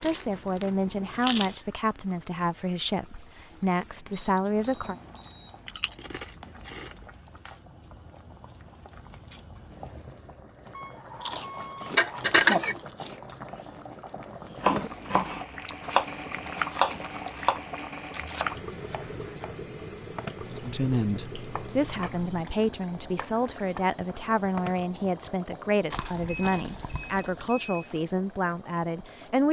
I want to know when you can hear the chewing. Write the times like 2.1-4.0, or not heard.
0.0-1.6, 5.7-7.0, 11.2-13.2, 15.6-17.3, 20.4-22.4, 25.9-27.5.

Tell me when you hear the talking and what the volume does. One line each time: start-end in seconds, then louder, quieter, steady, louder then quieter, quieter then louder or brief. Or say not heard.
0.0-5.0 steady
20.6-29.4 steady.